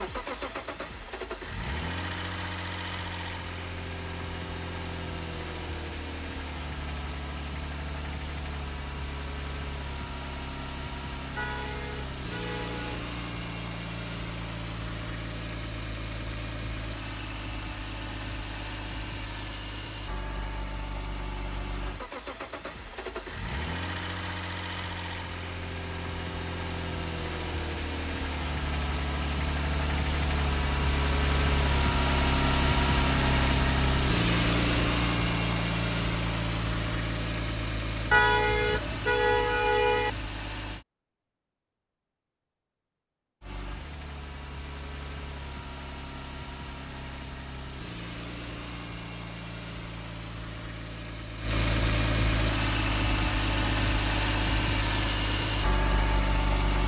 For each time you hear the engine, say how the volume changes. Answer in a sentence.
You can hear the engine from 0.0 to 40.9 s, getting louder; and from 43.4 to 56.8 s, getting louder.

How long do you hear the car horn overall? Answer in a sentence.
You can hear the car horn for 4 seconds altogether.